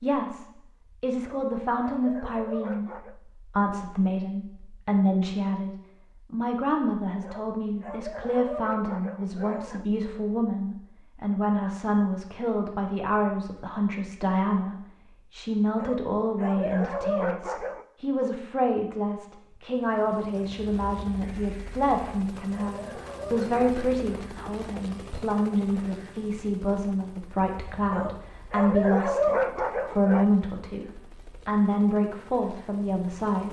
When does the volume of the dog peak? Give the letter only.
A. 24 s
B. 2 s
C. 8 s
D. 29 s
D.